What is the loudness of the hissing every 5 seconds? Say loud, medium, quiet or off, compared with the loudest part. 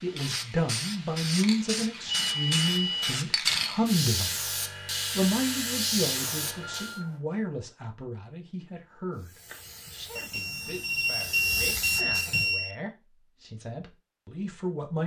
loud, loud, medium.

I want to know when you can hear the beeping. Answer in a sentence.
You can hear the beeping from 2.0 to 3.2 s, from 6.0 to 7.2 s and from 10.2 to 12.8 s.